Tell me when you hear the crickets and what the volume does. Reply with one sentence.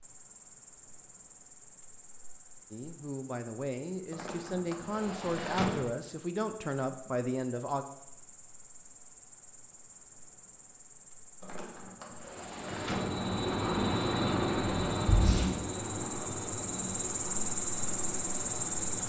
You can hear the crickets from 0.0 to 19.0 s, getting louder.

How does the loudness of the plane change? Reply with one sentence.
The loudness of the plane goes down.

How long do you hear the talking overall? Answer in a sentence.
You can hear the talking for 5 seconds altogether.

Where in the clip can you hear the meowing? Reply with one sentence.
You can hear the meowing from 14.6 to 15.6 s.